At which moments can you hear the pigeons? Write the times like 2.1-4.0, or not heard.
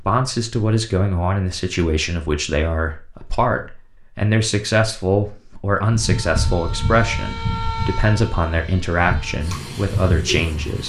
9.3-10.8.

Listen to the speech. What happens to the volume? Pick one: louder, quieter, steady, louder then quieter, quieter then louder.
steady.